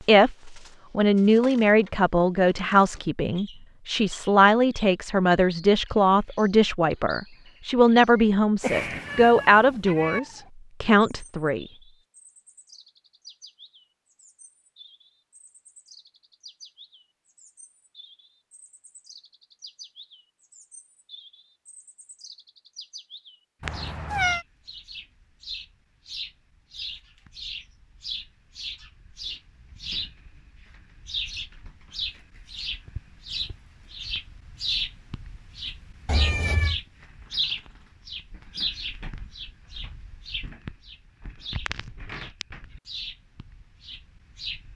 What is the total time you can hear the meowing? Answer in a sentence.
The meowing can be heard for 3 seconds in total.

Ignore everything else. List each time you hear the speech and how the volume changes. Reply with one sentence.
The speech can be heard from 0.1 to 11.7 s, at a steady volume.